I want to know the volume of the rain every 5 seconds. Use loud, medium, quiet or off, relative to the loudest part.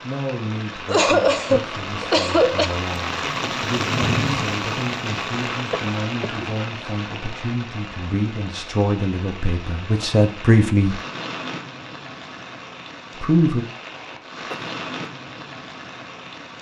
loud, medium, medium, medium.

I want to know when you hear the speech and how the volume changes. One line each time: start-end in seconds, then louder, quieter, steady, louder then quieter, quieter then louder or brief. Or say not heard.
0.0-11.0 louder
13.2-13.7 brief.